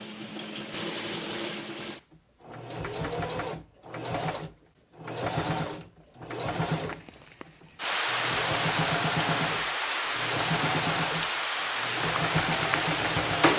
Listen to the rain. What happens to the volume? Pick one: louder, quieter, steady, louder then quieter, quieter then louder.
steady.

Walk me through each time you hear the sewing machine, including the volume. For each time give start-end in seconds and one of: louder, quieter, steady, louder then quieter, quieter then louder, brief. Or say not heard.
0.0-13.5 steady.